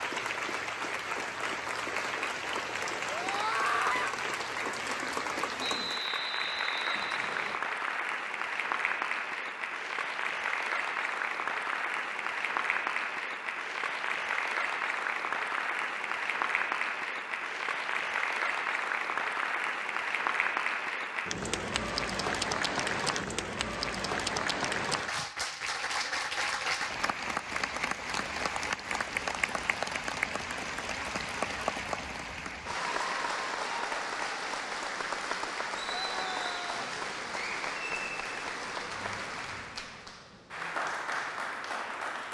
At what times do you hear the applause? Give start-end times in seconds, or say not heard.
0.0-42.2.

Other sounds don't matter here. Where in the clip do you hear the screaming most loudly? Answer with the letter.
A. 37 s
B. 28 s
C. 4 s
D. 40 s
C.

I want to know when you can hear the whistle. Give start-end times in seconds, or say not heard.
5.5-7.6.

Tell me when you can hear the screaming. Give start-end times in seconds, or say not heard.
3.1-4.2, 35.9-36.8.